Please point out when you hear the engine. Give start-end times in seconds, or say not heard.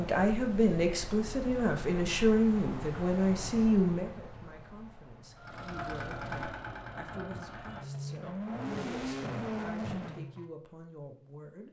5.3-10.4.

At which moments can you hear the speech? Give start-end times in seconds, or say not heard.
0.0-11.6.